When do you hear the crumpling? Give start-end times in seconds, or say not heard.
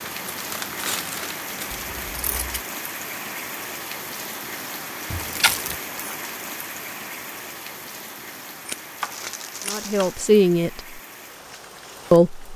0.0-2.2, 5.1-5.8, 9.0-10.2.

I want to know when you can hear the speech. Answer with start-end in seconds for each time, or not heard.
9.7-11.0, 12.1-12.5.